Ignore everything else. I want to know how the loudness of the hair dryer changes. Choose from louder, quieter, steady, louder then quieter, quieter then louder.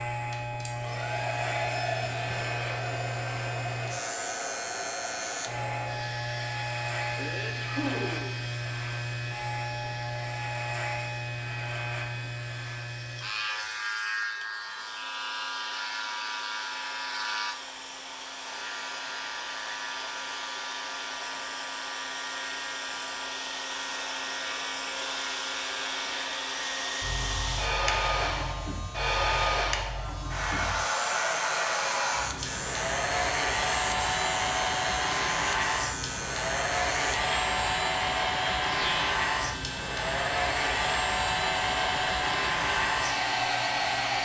quieter then louder.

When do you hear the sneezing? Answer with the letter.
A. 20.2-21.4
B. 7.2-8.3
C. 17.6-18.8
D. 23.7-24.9
B.